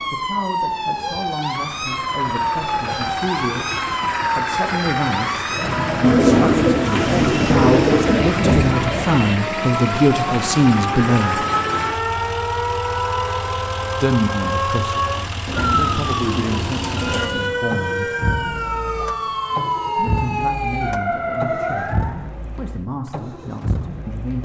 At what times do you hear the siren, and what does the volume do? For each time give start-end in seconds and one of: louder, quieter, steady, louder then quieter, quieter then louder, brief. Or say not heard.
0.0-22.2 steady.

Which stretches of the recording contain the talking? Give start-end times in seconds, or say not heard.
0.1-11.4, 13.9-18.1, 19.9-24.4.